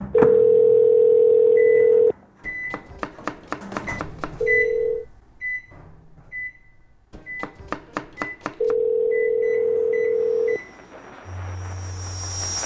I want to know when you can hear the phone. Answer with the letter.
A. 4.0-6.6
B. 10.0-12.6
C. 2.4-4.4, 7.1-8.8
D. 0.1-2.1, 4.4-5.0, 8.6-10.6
D.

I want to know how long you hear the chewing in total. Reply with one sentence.
The chewing can't be heard in this clip.